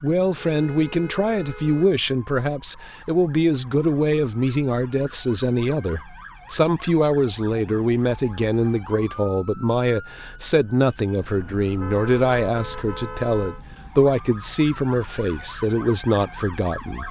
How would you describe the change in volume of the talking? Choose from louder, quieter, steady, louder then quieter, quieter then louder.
steady.